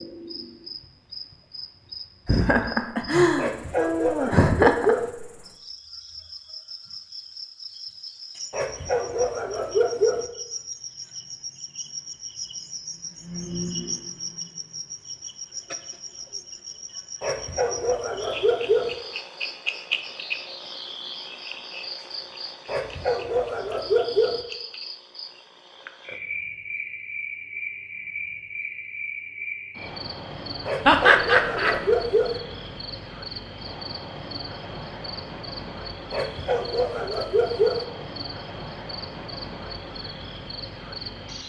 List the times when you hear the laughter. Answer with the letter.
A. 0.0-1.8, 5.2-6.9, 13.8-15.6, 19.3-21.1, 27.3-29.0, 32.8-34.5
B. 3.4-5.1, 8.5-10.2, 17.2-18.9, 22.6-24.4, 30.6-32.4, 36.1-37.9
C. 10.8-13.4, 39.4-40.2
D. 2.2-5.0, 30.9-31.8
D.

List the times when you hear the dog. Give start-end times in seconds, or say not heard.
3.4-5.1, 8.5-10.2, 17.2-18.9, 22.6-24.4, 30.6-32.4, 36.1-37.9.